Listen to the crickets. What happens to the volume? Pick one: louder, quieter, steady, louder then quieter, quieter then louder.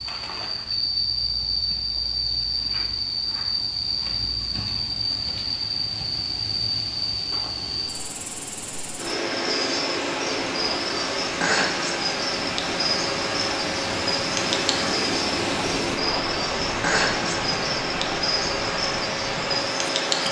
steady.